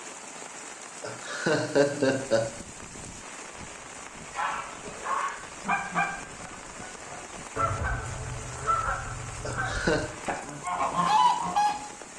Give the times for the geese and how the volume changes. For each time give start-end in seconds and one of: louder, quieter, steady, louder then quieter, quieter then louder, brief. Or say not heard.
4.3-11.8 quieter then louder.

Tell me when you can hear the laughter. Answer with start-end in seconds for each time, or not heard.
1.0-2.5, 9.4-10.1.